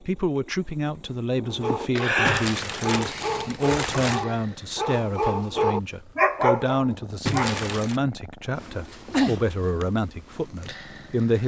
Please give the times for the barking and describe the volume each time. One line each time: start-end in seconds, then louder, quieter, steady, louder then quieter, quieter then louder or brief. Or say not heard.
1.4-7.7 louder.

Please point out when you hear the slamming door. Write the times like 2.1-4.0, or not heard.
not heard.